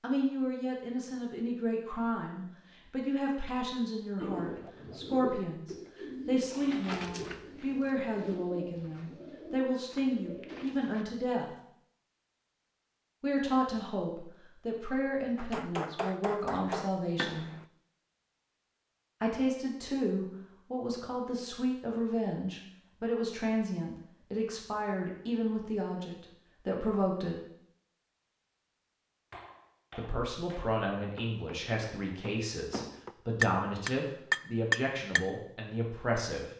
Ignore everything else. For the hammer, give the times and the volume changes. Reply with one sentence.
You can hear the hammer briefly from 15.3 to 17.6 s; and from 29.3 to 35.2 s, getting louder.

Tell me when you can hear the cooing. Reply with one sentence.
The cooing can be heard from 4.2 to 11.1 s.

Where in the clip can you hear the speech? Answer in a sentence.
You can hear the speech from 0.0 to 11.6 s, from 13.2 to 17.5 s, from 19.2 to 27.4 s and from 29.9 to 36.5 s.